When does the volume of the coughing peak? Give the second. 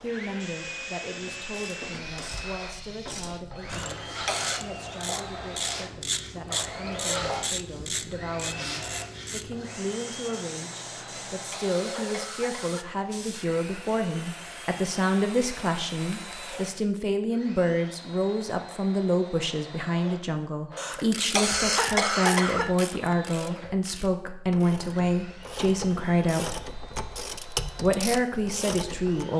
22 s.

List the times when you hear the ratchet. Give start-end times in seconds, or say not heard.
1.1-9.5, 20.8-29.2.